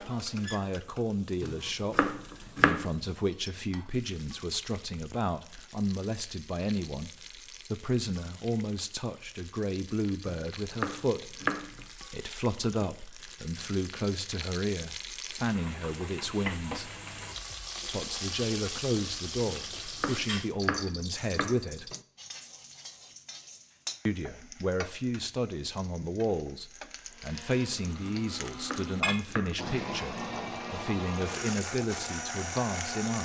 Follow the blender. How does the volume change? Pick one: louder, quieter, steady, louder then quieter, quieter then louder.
louder.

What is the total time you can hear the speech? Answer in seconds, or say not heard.
30 s.